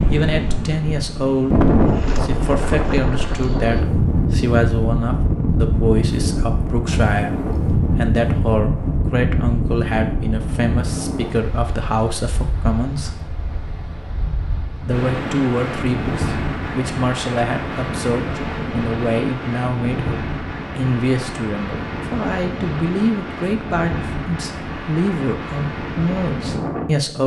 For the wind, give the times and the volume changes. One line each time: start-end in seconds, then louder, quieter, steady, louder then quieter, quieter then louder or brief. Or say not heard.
0.0-27.2 quieter.